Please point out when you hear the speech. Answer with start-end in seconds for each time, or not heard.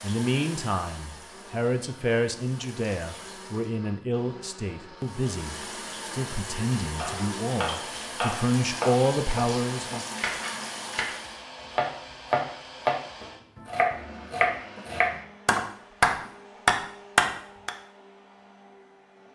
0.0-10.1.